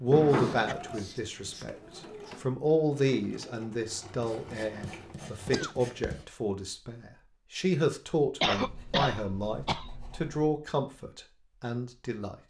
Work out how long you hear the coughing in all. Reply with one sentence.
The coughing can be heard for 3 seconds in total.